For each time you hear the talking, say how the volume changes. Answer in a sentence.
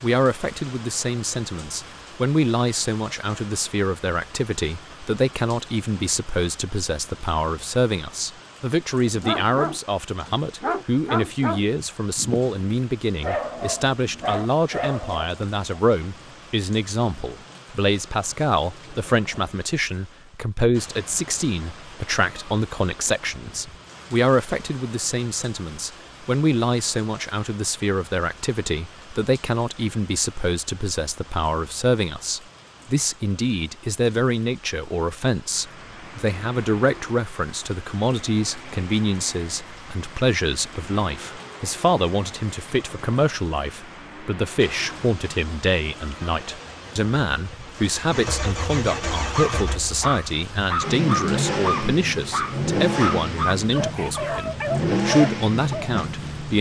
You can hear the talking from 0.0 to 56.5 s, at a steady volume.